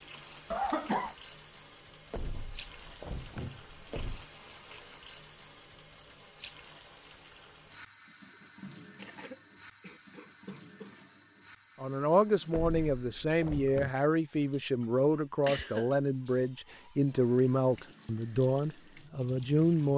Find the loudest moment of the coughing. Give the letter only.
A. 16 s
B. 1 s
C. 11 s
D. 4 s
B.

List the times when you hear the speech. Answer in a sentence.
You can hear the speech from 11.8 to 19.9 s.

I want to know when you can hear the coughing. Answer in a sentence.
You can hear the coughing from 0.5 to 1.1 s, from 8.9 to 10.9 s and from 15.4 to 16.4 s.